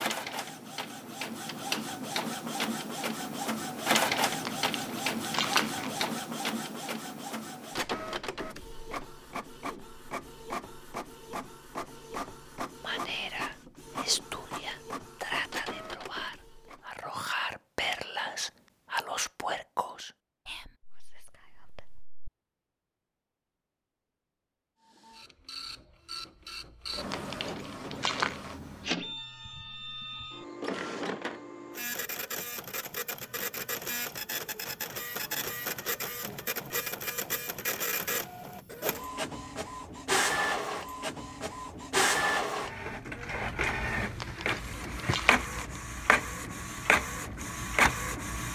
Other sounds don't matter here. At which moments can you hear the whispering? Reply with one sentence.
The whispering can be heard from 12.8 to 22.3 s.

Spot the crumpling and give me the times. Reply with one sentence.
The crumpling can be heard from 4.2 to 6.1 s, from 26.9 to 28.6 s and from 44.0 to 45.8 s.